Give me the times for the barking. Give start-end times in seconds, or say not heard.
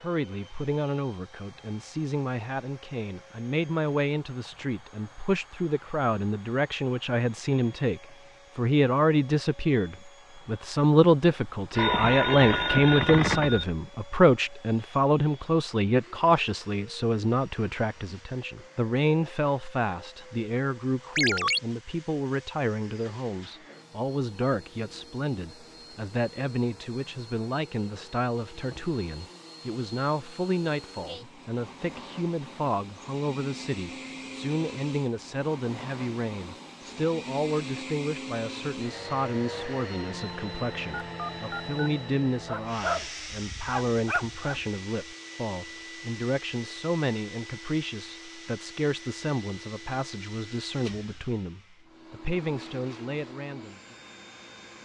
42.4-44.6.